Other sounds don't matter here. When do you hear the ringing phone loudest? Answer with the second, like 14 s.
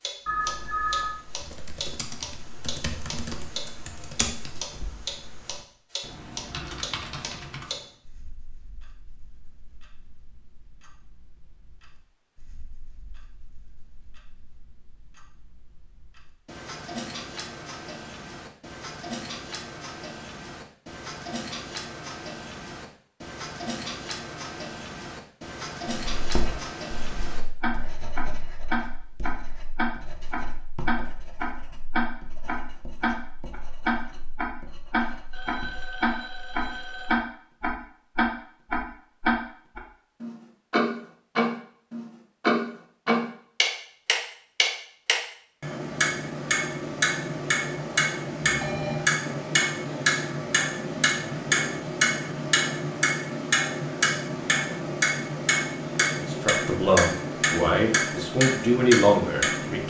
1 s.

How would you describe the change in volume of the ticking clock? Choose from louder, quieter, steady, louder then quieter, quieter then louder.
louder.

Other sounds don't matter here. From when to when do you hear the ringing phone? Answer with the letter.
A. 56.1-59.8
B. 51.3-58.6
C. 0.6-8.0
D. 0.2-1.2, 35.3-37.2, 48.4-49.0
D.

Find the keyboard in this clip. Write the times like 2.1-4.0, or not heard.
0.6-8.0.